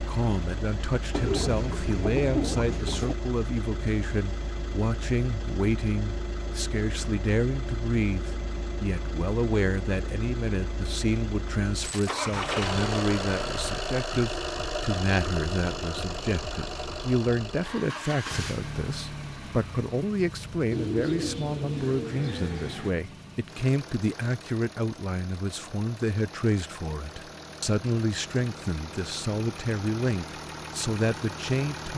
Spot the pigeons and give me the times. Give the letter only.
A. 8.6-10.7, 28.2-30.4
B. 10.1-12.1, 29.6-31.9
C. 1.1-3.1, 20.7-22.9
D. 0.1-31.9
C.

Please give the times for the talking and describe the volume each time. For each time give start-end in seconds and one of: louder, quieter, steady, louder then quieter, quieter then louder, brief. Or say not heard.
0.1-31.9 steady.